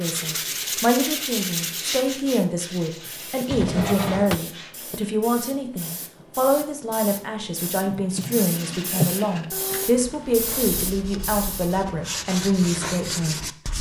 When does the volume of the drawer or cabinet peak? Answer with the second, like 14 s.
9 s.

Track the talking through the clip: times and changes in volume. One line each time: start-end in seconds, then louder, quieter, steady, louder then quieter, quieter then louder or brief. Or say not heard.
0.0-13.4 steady.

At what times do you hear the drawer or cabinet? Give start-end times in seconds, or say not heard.
3.5-4.4, 7.8-9.2.